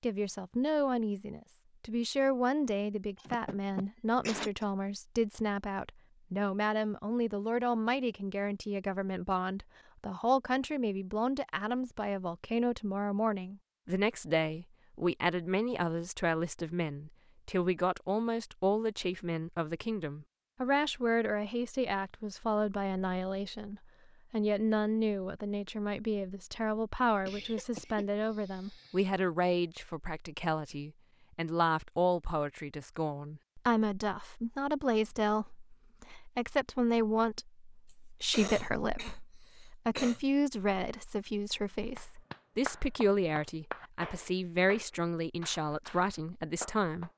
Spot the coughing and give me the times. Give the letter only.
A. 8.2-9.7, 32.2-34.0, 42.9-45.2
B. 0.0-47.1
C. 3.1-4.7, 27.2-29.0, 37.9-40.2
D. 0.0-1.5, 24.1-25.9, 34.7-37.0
C.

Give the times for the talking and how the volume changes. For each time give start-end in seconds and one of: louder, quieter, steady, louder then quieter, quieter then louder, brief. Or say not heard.
0.0-47.1 steady.